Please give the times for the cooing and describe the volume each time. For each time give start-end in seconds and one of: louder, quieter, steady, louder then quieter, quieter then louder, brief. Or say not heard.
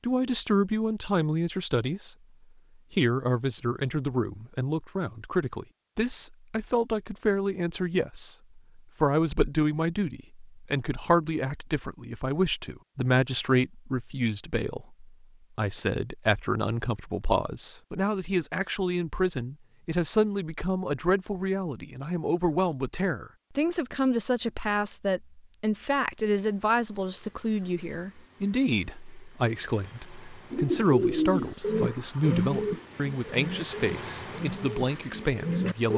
30.5-35.9 quieter.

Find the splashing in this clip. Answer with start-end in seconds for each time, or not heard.
not heard.